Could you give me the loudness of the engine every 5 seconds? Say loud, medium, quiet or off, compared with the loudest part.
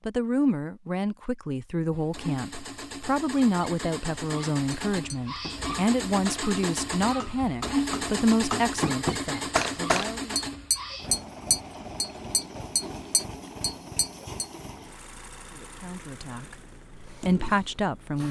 medium, loud, medium, quiet.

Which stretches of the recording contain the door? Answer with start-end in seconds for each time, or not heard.
not heard.